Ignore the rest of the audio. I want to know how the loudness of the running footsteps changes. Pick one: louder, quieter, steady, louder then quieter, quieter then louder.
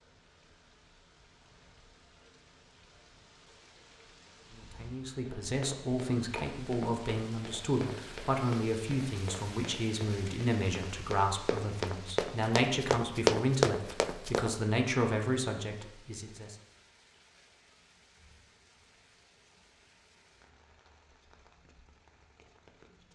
louder.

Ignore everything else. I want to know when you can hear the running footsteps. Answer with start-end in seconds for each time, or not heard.
5.2-14.6.